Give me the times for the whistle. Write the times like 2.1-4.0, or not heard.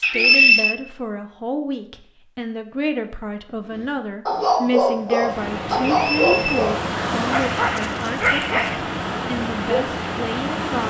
0.0-0.8, 5.8-6.7.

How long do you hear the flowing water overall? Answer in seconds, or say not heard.
6 s.